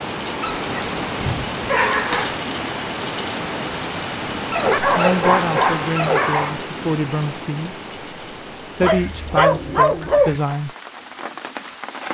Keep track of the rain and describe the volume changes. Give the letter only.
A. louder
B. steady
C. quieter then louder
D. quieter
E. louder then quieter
D.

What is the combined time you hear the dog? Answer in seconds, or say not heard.
6 s.